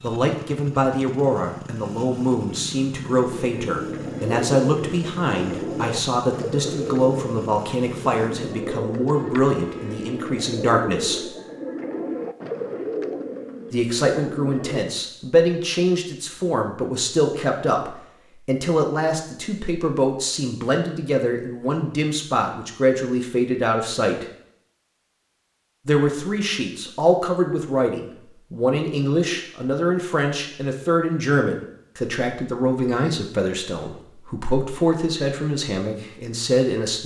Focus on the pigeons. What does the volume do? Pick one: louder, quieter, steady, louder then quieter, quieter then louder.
steady.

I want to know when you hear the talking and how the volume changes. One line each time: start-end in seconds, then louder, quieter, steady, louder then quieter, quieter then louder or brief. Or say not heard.
0.0-11.3 steady
13.7-24.2 steady
25.9-37.0 steady.